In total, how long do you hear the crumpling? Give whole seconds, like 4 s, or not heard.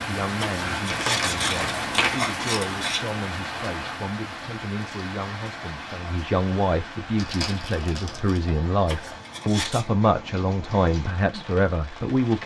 3 s.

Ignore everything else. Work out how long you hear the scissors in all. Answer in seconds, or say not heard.
4 s.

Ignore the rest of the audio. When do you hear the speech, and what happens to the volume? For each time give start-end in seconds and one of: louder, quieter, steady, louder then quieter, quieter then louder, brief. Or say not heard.
0.0-12.4 louder.